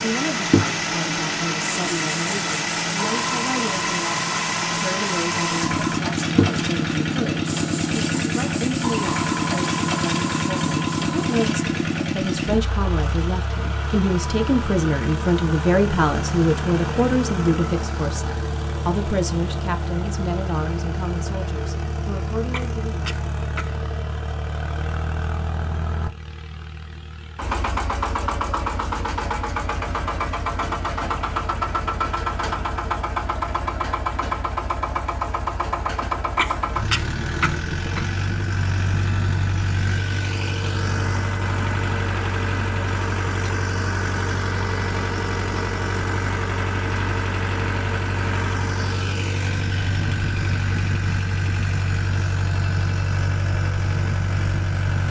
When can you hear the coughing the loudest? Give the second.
37 s.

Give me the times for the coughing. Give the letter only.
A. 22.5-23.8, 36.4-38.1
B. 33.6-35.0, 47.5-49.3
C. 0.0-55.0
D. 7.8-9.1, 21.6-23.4
A.